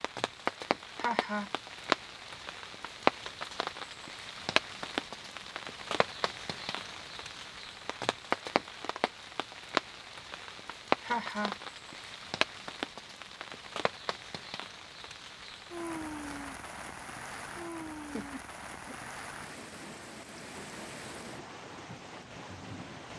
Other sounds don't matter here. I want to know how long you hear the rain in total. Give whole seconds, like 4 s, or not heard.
23 s.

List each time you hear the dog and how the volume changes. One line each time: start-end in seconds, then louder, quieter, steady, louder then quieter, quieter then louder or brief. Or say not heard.
not heard.